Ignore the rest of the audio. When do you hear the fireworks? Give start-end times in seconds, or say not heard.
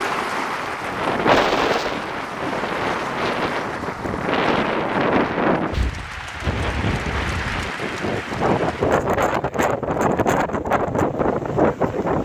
not heard.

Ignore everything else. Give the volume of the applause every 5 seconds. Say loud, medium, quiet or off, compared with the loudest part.
loud, loud, off.